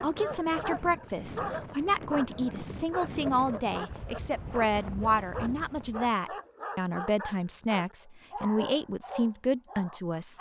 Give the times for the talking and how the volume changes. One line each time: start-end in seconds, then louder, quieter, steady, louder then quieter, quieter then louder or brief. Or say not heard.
0.0-10.3 steady.